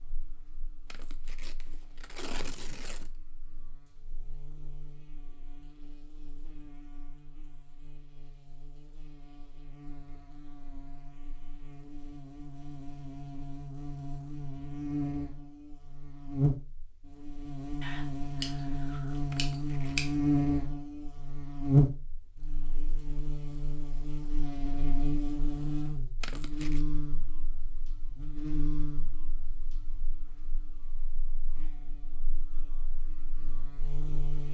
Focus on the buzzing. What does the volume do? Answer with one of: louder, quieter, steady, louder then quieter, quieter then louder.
louder then quieter.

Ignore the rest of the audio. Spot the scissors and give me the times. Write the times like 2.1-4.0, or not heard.
17.8-20.1.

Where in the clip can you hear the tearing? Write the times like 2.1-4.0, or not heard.
0.9-3.1, 19.3-20.1, 26.2-26.9.